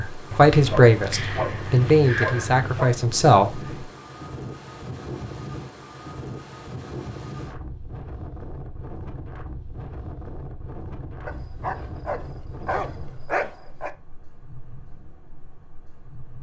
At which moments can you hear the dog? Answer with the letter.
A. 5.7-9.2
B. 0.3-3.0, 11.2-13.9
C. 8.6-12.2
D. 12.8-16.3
B.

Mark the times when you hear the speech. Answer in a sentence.
You can hear the speech from 0.0 to 3.6 s.